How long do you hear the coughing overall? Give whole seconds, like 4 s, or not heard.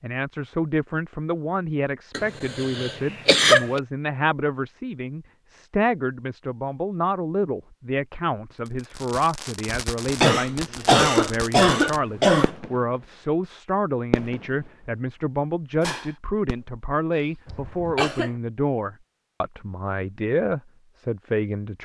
5 s.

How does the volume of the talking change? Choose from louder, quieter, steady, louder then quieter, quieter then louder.
steady.